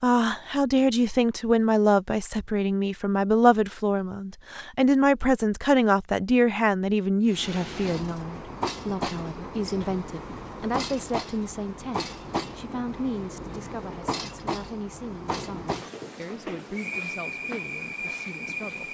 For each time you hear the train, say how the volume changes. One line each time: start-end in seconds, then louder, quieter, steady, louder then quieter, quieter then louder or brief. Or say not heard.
7.2-18.8 steady.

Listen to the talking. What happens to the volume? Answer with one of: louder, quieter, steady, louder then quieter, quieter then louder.
quieter.